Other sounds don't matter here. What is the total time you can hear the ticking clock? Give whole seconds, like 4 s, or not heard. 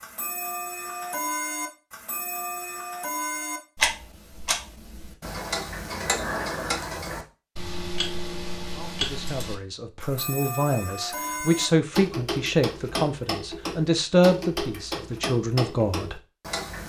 17 s.